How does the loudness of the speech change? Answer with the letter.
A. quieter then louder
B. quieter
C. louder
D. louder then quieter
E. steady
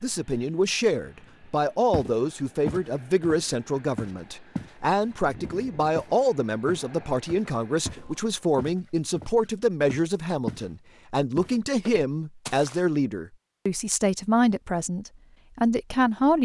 E.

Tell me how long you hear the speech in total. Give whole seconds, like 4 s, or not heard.
16 s.